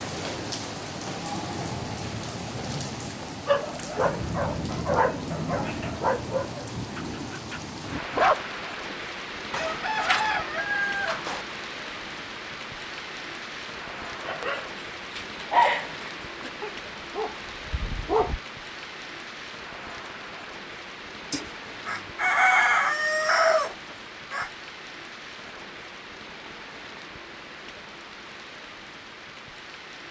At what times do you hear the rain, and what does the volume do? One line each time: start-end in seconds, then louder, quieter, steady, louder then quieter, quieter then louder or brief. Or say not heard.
0.0-30.0 quieter.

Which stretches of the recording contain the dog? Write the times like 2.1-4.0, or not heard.
3.5-8.9, 14.2-18.4.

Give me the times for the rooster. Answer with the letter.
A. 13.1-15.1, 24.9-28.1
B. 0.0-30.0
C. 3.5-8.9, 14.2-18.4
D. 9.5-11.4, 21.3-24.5
D.